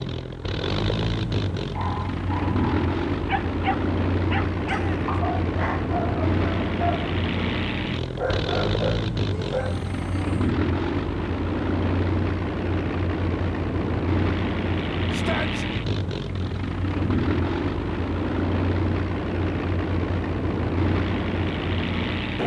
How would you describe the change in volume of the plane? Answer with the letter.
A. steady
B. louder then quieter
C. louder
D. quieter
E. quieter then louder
A.